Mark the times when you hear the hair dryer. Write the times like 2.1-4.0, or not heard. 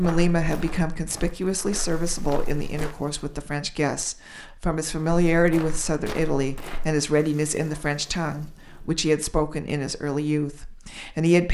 not heard.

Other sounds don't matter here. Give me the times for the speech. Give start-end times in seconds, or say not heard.
0.0-11.4.